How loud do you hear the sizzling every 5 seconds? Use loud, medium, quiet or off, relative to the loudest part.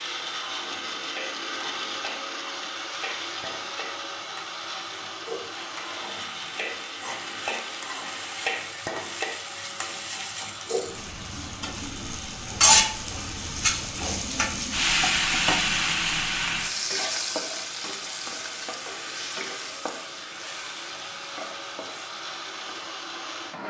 quiet, medium, loud, loud, quiet.